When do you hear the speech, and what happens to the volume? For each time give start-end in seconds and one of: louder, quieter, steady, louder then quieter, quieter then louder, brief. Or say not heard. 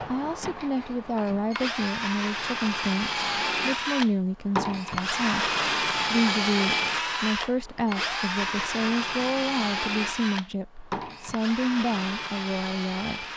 0.0-13.2 steady.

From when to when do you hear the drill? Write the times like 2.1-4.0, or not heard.
0.0-13.3.